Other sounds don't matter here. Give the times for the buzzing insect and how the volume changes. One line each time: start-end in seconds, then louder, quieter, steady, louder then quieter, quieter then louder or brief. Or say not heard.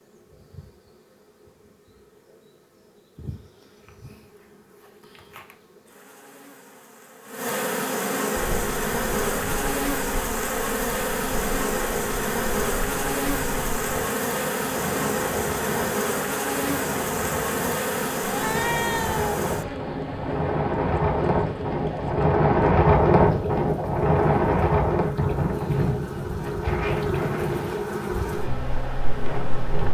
0.0-29.9 louder then quieter.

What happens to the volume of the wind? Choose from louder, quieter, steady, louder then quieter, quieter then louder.
louder then quieter.